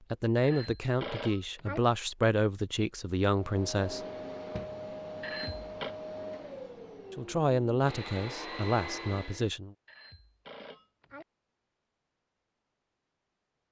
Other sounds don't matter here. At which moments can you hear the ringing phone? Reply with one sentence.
You can hear the ringing phone from 0.4 to 1.8 s, from 5.2 to 6.0 s and from 9.8 to 11.2 s.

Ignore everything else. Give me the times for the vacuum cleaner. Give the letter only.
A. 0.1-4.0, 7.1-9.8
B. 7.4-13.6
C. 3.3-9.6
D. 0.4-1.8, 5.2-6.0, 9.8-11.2
C.